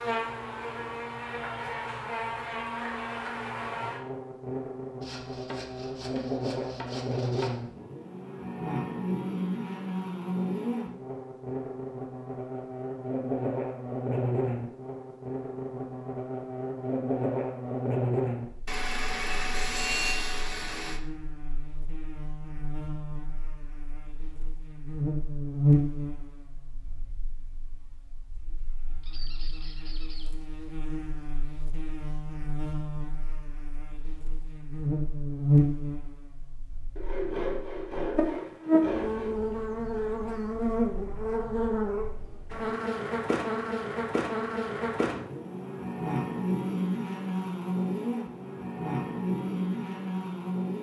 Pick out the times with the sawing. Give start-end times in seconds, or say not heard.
5.0-7.5, 18.6-21.0, 37.0-39.4.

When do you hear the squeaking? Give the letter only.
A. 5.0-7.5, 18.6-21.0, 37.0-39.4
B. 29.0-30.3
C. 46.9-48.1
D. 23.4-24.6
B.